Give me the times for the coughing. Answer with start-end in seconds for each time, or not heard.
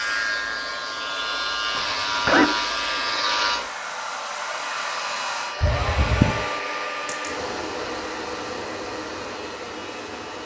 1.8-2.5, 5.6-6.4.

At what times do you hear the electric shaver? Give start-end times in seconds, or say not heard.
0.0-10.4.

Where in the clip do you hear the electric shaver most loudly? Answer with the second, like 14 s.
3 s.